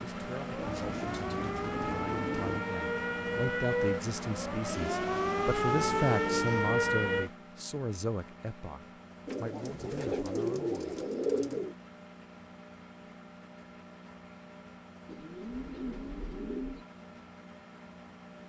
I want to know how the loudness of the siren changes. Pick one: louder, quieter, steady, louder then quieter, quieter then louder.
louder.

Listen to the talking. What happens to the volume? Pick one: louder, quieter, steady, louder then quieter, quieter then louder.
louder then quieter.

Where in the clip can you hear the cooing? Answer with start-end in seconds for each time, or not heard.
0.6-2.6, 4.7-6.8, 9.2-11.8, 15.1-16.9.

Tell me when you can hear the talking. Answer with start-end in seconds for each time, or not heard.
0.0-11.7.